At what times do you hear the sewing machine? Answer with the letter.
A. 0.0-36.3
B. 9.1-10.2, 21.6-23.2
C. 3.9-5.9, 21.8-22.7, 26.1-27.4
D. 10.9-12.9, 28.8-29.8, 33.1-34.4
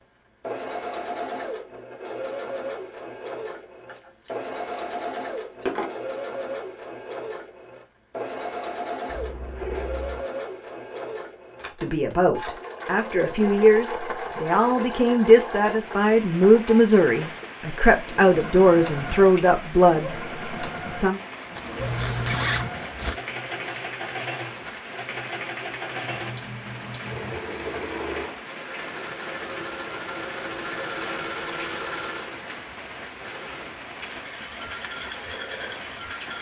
A.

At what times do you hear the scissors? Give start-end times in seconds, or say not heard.
3.9-5.9, 21.8-22.7, 26.1-27.4.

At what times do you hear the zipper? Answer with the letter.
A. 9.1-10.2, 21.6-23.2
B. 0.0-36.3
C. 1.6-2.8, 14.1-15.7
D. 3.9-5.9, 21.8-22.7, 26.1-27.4
A.